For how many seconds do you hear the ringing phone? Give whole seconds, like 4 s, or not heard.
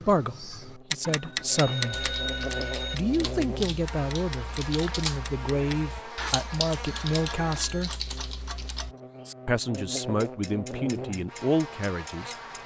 3 s.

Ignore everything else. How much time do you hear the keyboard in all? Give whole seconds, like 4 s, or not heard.
7 s.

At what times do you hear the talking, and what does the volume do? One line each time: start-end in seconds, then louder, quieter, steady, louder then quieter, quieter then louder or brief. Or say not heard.
0.1-2.1 brief
2.9-8.0 steady
9.4-12.3 brief.